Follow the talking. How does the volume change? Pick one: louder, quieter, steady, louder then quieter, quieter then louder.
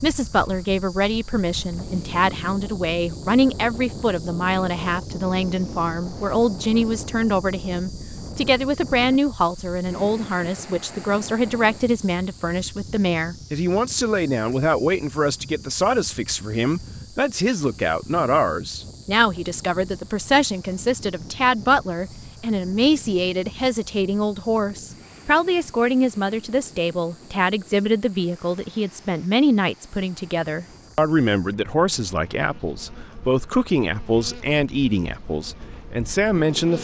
steady.